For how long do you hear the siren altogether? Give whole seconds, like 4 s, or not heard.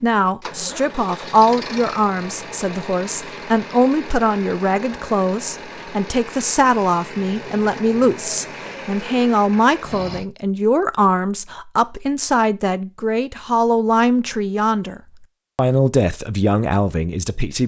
not heard.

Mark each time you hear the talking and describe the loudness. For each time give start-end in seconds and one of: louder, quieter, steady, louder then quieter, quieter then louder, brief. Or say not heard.
0.0-17.6 steady.